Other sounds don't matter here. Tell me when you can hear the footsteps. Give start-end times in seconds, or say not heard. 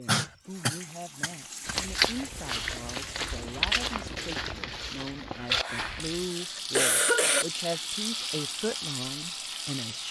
1.6-6.3.